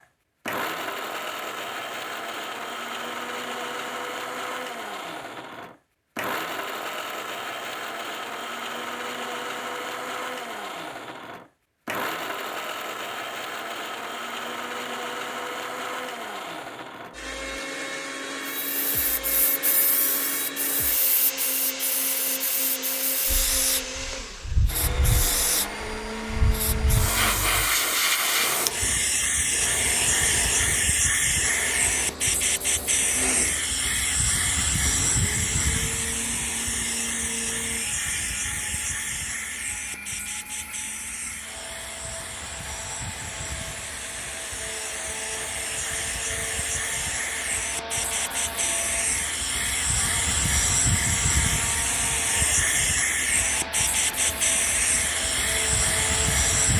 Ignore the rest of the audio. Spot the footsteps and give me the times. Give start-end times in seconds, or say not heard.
not heard.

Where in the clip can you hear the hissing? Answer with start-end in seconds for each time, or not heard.
18.5-56.7.